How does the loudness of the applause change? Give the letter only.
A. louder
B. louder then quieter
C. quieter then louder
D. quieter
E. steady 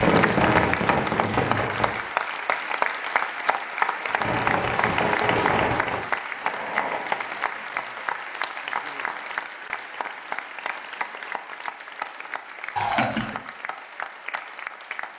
D.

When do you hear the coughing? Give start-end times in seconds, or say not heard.
12.8-13.3.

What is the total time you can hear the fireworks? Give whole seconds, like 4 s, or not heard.
5 s.